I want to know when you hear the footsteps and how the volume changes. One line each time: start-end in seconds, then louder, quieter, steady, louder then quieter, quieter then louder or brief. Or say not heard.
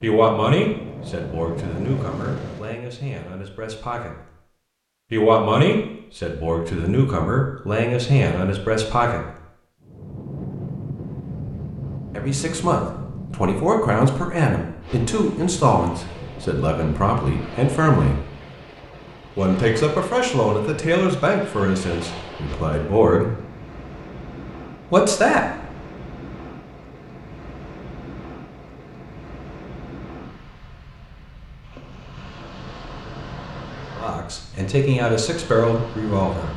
not heard.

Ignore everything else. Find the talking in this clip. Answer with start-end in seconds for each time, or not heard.
0.0-4.2, 5.1-9.2, 12.1-18.2, 19.4-23.3, 24.9-25.4, 34.0-36.5.